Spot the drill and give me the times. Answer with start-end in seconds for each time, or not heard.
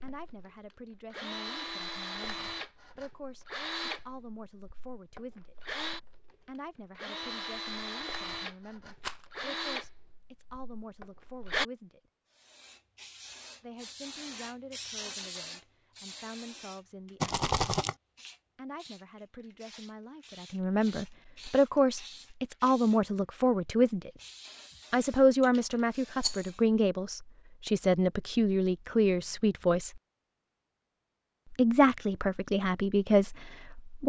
0.0-11.7.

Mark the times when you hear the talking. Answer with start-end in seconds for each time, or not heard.
0.0-5.5, 6.5-12.0, 13.6-17.4, 18.6-24.1, 24.9-30.0, 31.5-34.0.